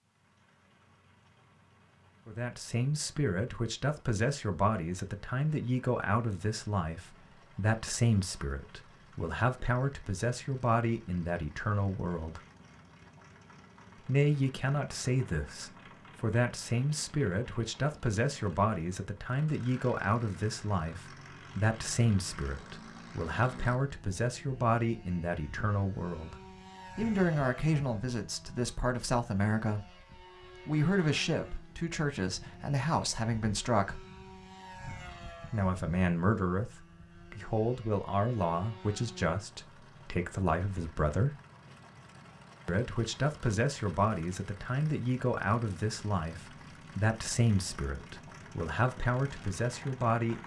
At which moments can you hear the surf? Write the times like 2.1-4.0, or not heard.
not heard.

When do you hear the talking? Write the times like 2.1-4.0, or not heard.
2.2-12.4, 14.0-26.4, 26.9-30.1, 30.6-34.0, 35.5-41.4, 42.6-50.4.